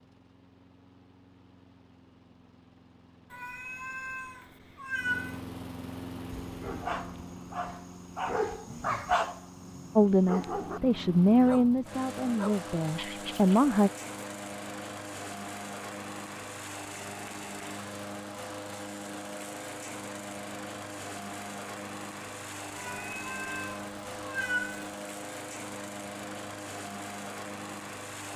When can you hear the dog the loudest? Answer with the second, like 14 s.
9 s.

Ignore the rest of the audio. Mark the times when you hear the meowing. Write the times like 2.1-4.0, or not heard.
3.3-5.4, 22.8-24.9.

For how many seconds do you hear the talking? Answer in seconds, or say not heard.
4 s.